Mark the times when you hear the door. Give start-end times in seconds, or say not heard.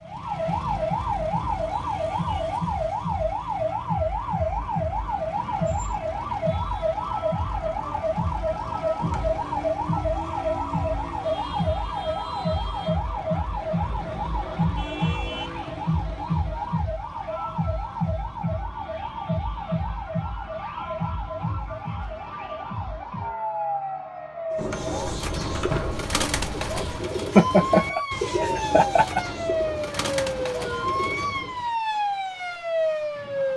8.9-9.7, 24.6-26.1.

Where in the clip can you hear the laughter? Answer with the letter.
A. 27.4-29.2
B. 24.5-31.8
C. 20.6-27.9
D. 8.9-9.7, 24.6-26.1
A.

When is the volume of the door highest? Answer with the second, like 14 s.
26 s.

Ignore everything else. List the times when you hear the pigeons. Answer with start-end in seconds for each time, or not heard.
24.5-31.8.